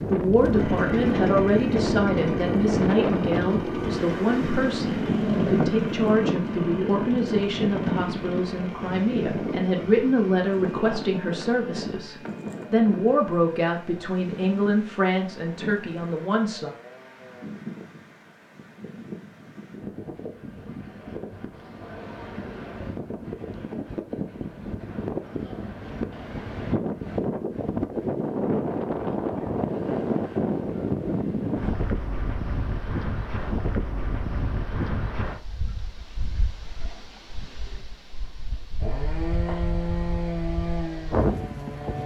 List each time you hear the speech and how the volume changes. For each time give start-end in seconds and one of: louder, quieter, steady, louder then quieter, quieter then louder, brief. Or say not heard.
0.0-16.7 steady.